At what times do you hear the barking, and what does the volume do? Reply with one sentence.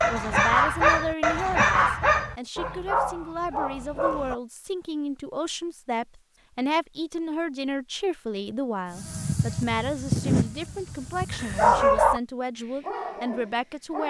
The barking can be heard from 0.0 to 4.3 s, getting quieter; and briefly from 11.3 to 14.0 s.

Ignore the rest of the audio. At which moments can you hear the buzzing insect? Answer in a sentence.
You can hear the buzzing insect from 8.9 to 11.8 s.